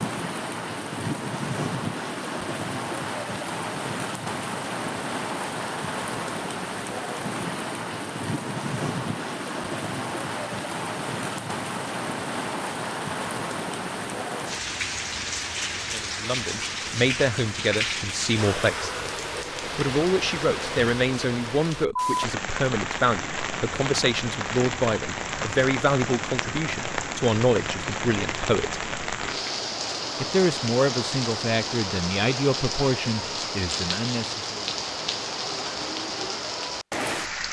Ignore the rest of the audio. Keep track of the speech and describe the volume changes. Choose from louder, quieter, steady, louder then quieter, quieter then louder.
steady.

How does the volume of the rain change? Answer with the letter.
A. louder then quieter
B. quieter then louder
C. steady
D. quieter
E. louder
C.